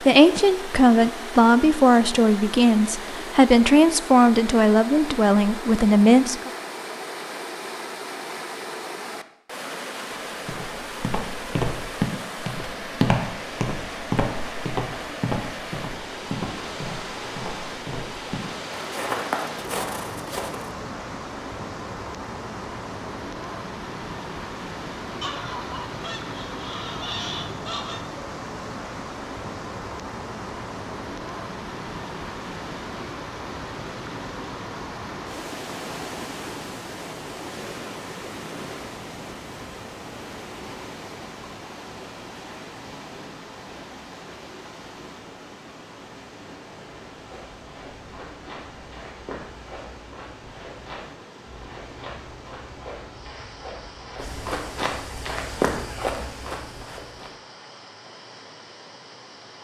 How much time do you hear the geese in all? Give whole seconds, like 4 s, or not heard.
3 s.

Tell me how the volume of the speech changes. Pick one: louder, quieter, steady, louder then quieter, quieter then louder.
steady.